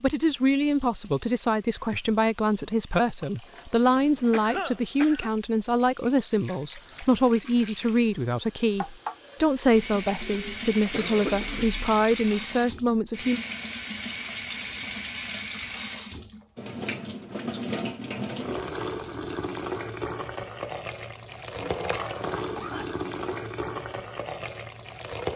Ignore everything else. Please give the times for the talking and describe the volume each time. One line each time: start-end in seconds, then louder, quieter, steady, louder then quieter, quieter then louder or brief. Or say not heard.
0.0-13.4 steady.